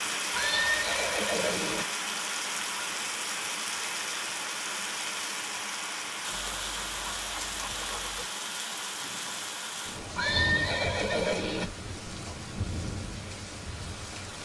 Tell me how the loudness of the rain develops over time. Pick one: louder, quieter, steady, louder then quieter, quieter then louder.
quieter.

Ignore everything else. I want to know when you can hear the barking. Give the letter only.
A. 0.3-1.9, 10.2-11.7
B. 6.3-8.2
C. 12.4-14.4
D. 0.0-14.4
B.